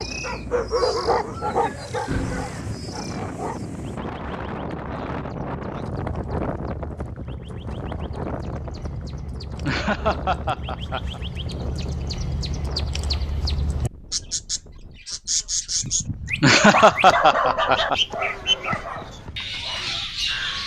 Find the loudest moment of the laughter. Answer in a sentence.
The loudest moment of the laughter is at 17 seconds.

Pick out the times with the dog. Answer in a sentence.
You can hear the dog from 0.0 to 3.7 s and from 16.7 to 20.6 s.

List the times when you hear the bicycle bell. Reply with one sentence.
The bicycle bell can be heard from 2.0 to 2.8 s.